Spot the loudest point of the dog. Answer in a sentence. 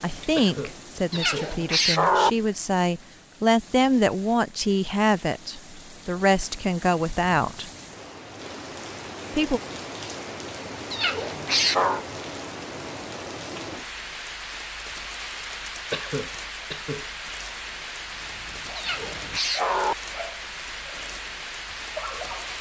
The loudest moment of the dog is at 22 seconds.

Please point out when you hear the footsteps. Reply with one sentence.
The footsteps can't be heard in this clip.